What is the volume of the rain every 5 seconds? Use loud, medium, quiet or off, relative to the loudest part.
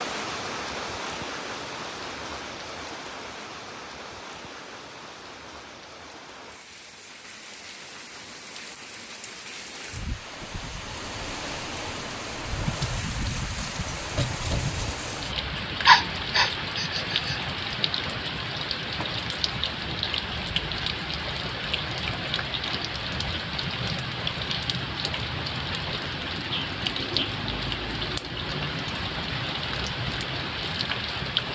medium, quiet, loud, loud, loud, loud, loud.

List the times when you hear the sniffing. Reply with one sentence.
You can hear the sniffing from 15.8 to 17.4 s.